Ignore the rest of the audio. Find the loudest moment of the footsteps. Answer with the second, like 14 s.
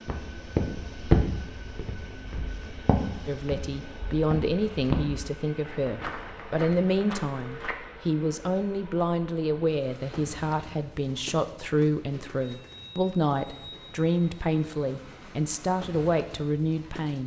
1 s.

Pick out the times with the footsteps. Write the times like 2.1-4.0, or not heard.
0.1-7.8.